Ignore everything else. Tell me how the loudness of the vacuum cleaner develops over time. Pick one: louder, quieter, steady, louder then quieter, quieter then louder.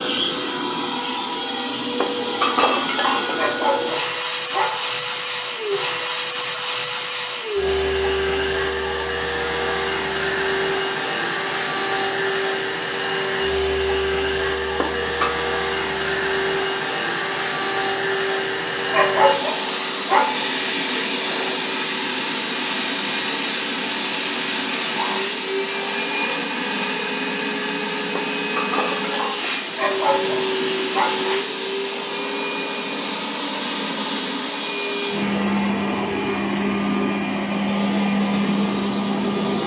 steady.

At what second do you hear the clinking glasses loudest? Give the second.
3 s.